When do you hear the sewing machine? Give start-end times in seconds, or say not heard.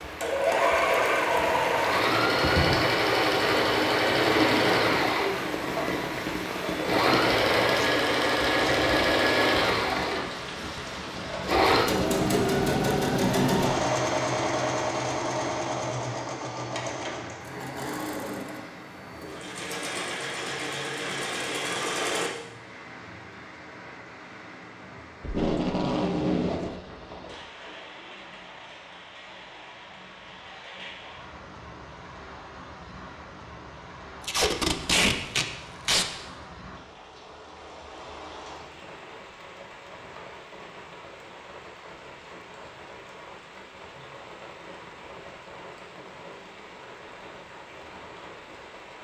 0.0-22.3.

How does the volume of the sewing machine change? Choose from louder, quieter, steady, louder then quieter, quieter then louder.
quieter.